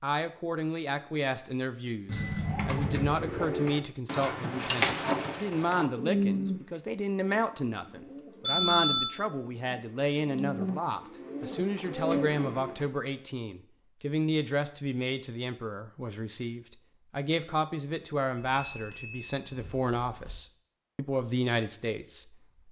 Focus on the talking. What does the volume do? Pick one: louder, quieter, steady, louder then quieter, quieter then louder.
steady.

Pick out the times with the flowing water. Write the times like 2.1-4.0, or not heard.
not heard.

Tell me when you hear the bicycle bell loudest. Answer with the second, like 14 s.
9 s.